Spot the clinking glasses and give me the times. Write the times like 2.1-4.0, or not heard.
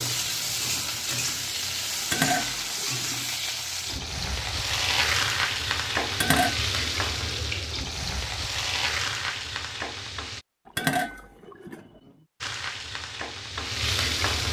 2.1-3.0, 6.1-6.6, 10.8-11.8.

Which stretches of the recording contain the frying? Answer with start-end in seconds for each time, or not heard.
0.0-10.4, 12.4-14.4.